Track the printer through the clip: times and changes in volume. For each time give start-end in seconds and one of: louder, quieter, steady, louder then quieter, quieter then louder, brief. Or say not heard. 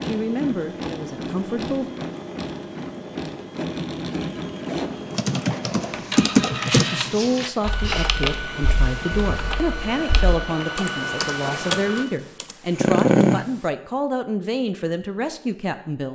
0.0-12.1 steady.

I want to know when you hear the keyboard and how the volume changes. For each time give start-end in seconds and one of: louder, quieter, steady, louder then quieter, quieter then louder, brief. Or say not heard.
5.1-13.4 quieter then louder.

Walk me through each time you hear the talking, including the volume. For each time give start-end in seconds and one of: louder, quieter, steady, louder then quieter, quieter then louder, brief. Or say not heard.
0.0-1.9 brief
6.9-16.1 steady.